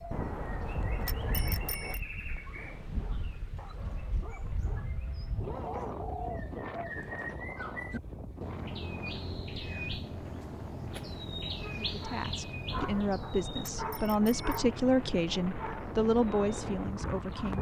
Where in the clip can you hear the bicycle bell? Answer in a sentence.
The bicycle bell can be heard from 0.1 to 2.0 s, from 8.6 to 9.4 s and from 12.7 to 14.7 s.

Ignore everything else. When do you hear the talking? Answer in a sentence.
You can hear the talking from 11.9 to 17.5 s.